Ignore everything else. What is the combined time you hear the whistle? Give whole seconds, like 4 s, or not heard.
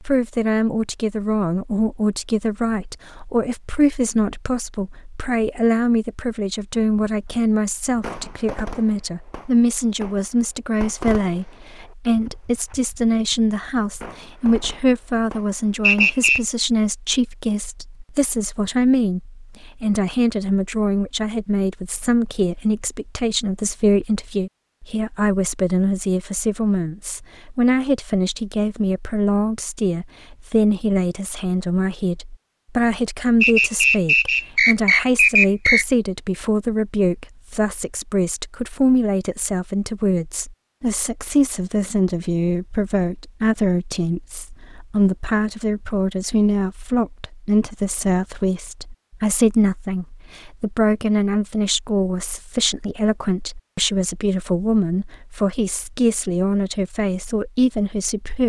3 s.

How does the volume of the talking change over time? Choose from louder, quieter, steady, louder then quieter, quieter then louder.
steady.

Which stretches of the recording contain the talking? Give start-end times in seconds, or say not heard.
0.0-58.4.